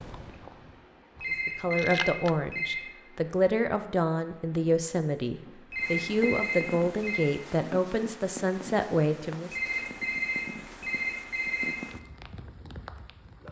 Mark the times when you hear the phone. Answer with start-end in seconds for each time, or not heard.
1.2-2.9, 5.7-7.3, 9.5-11.8.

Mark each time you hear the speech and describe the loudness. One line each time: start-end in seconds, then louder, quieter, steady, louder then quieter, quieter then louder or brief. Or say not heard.
1.4-9.5 steady.